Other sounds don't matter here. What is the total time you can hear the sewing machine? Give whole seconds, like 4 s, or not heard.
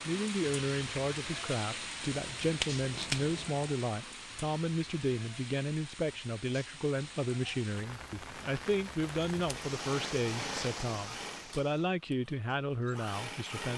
4 s.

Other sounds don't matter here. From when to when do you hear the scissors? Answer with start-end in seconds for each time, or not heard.
2.1-3.5.